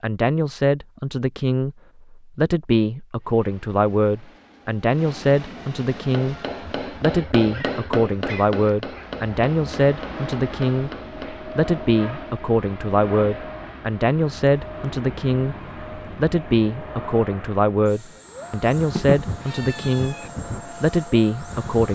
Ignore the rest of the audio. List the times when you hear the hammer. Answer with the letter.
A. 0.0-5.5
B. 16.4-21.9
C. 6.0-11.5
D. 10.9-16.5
C.